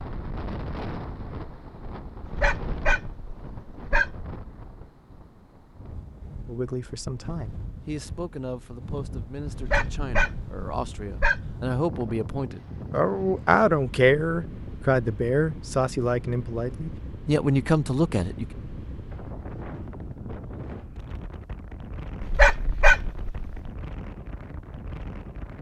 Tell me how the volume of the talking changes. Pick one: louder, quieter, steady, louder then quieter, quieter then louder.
louder.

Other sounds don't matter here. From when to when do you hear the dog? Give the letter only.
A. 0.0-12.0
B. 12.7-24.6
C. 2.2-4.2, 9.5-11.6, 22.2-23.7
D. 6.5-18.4
C.